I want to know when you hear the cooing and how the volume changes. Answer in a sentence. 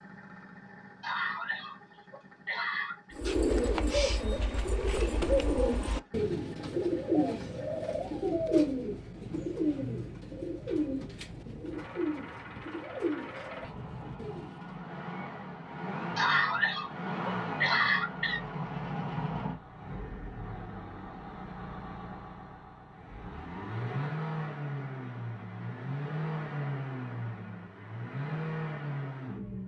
You can hear the cooing from 3.1 to 14.8 s, getting quieter.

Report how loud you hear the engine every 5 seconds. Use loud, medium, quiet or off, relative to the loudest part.
quiet, quiet, medium, loud, loud, loud.